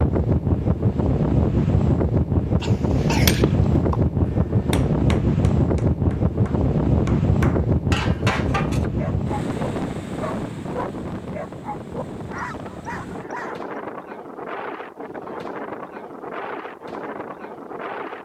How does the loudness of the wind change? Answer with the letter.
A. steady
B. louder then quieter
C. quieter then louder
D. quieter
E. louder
D.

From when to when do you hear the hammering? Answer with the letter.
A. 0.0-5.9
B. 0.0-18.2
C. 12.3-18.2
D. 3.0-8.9
D.